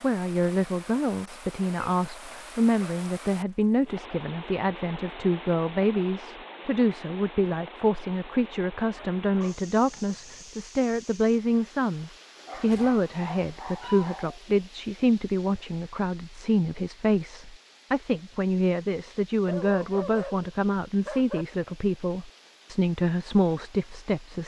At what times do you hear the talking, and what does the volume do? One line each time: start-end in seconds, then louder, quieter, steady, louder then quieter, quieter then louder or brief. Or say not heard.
0.0-24.4 steady.